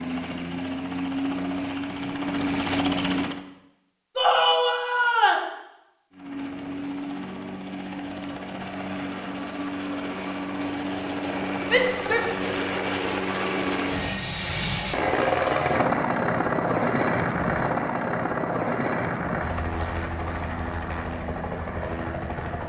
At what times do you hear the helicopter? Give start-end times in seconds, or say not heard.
0.0-3.5, 6.1-22.6.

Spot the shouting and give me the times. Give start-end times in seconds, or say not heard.
4.2-5.5, 11.7-12.3.